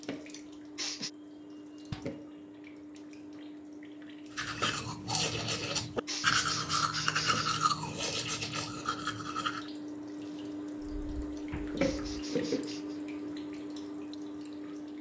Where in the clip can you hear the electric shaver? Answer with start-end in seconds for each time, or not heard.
not heard.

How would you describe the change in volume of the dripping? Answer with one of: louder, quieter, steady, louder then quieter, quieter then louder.
louder.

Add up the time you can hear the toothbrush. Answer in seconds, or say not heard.
5 s.